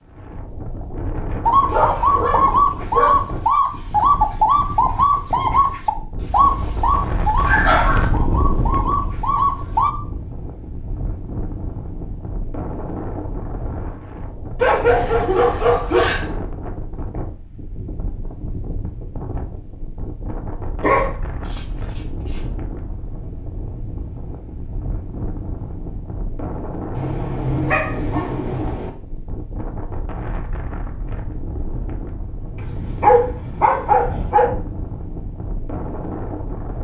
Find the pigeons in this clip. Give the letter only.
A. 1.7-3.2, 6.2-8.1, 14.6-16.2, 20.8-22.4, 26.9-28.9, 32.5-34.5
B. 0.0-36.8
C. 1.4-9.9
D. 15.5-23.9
C.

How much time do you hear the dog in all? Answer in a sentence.
The dog can be heard for 11 seconds in total.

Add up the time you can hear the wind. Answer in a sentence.
The wind can be heard for 37 seconds in total.